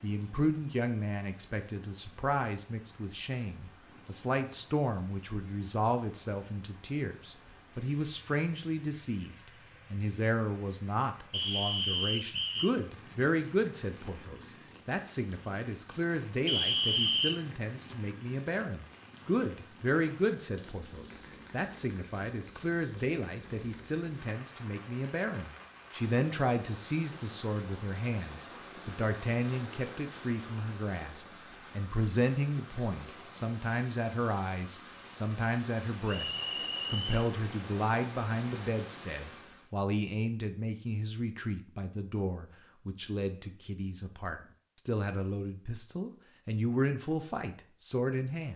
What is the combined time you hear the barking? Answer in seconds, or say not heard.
not heard.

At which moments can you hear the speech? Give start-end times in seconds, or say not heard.
0.0-48.5.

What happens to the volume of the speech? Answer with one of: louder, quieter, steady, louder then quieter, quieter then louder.
steady.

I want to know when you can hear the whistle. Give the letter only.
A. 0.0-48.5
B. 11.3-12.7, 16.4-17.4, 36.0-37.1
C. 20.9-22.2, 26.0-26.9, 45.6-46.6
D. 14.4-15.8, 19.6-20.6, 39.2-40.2
B.